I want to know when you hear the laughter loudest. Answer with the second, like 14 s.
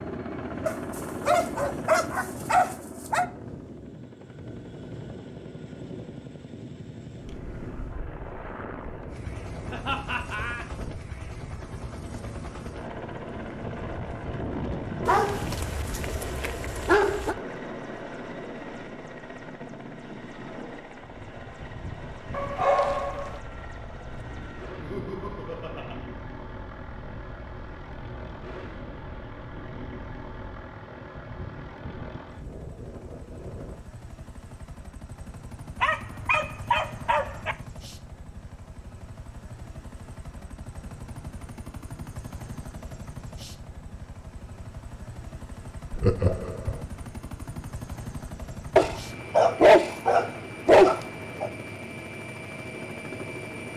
46 s.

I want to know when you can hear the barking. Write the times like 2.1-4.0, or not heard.
0.7-3.2, 15.1-17.4, 22.3-23.3, 35.8-37.5, 48.8-51.5.